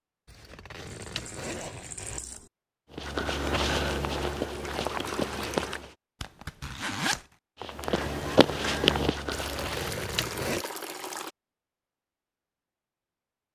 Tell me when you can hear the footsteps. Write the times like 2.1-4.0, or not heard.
2.9-5.9, 7.6-10.0.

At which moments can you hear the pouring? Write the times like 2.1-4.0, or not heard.
0.8-2.5, 4.6-5.8, 9.3-11.3.